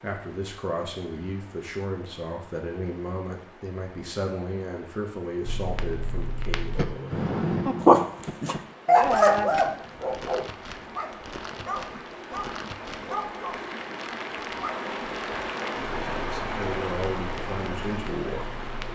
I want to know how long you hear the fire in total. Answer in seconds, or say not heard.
13 s.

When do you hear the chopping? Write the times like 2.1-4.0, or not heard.
not heard.